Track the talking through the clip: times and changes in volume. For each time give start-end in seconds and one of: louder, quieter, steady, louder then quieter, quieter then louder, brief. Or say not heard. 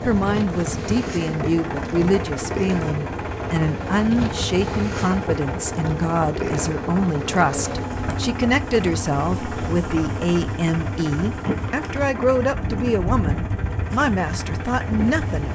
0.0-15.5 steady.